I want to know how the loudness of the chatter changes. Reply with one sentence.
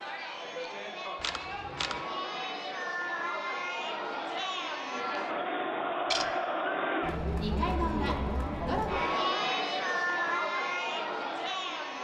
The volume of the chatter goes up.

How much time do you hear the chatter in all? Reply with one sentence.
The chatter can be heard for 12 seconds in total.